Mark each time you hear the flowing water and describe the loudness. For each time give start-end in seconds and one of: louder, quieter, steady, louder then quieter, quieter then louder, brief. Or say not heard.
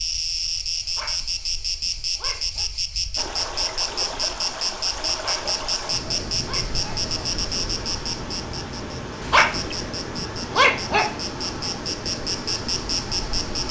3.1-13.6 steady.